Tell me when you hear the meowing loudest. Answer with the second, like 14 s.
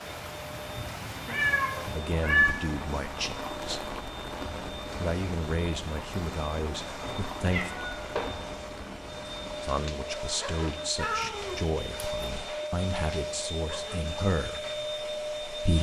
2 s.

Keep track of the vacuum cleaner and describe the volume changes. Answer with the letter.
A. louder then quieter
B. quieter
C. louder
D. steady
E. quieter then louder
C.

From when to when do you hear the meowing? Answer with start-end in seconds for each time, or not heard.
1.2-2.6, 7.0-8.4, 10.9-12.3.